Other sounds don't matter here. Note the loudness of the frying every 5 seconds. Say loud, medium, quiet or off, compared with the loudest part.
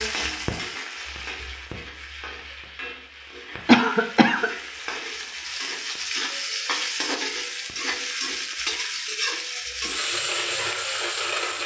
medium, loud, loud.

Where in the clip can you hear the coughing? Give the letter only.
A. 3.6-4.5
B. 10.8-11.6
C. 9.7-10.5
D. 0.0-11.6
A.